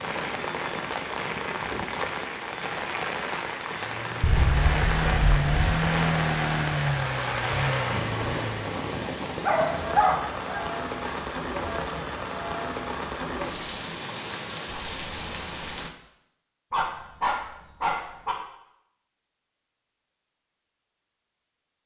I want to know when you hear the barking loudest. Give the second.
10 s.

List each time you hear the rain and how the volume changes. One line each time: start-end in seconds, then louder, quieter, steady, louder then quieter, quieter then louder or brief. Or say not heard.
0.0-15.9 steady.